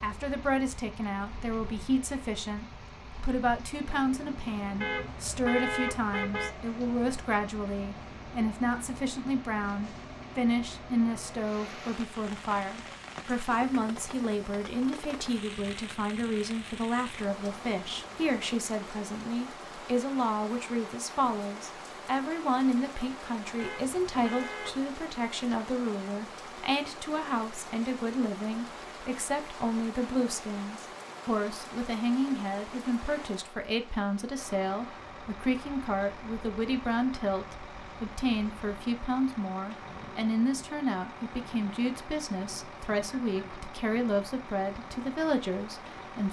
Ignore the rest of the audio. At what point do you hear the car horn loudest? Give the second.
6 s.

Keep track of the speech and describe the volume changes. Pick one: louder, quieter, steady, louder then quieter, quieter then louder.
steady.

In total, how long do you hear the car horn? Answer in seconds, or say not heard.
3 s.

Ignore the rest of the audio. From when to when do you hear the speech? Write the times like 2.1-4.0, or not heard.
0.0-46.2.